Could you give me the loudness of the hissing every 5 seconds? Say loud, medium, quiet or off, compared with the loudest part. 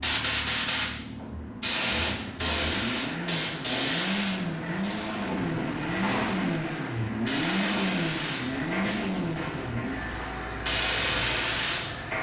loud, medium, loud.